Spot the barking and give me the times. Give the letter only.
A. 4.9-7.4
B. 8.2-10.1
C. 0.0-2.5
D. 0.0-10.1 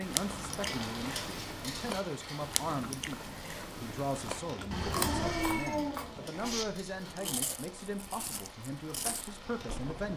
A.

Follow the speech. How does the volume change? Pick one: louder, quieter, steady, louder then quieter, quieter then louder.
steady.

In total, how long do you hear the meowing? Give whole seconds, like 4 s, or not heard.
2 s.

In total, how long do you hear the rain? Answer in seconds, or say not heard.
10 s.